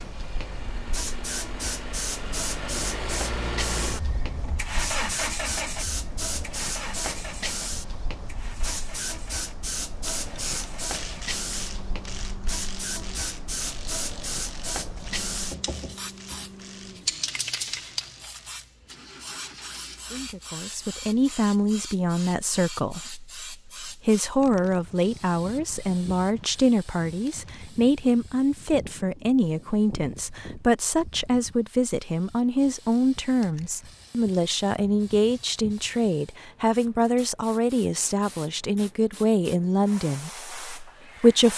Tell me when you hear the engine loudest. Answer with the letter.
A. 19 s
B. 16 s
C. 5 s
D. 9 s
C.